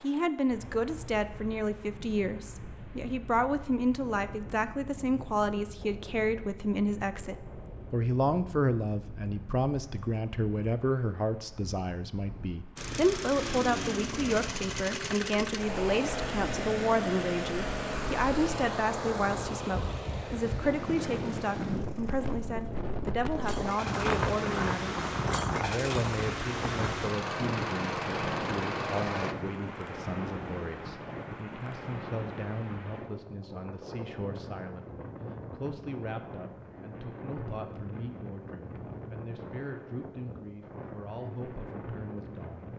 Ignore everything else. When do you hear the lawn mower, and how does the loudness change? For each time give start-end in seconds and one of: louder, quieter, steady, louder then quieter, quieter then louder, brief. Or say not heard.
12.8-29.4 quieter then louder.